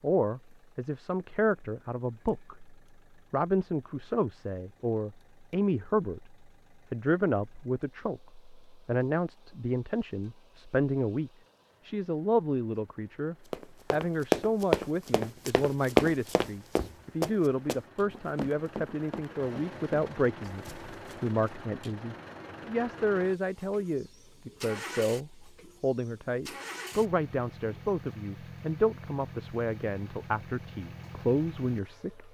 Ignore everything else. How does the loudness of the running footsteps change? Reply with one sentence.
The volume of the running footsteps goes down.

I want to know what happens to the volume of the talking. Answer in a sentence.
The volume of the talking stays about the same.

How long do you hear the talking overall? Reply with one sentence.
The talking can be heard for 32 seconds in total.